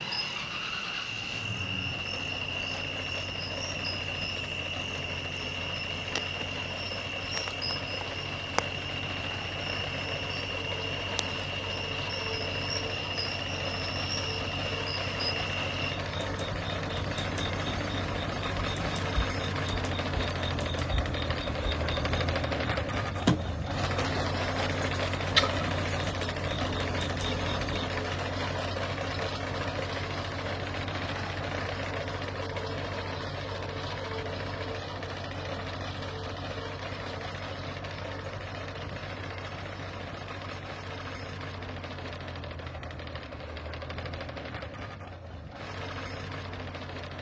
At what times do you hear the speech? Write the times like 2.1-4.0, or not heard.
not heard.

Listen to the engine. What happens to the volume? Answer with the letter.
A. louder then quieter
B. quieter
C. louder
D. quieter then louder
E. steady
A.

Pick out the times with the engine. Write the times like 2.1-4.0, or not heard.
0.0-47.1.